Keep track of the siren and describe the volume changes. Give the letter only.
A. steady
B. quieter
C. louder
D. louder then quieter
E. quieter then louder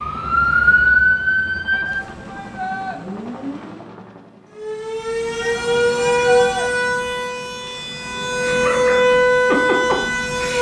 E.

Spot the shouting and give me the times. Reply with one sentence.
The shouting can be heard from 1.7 to 3.0 s and from 5.4 to 6.7 s.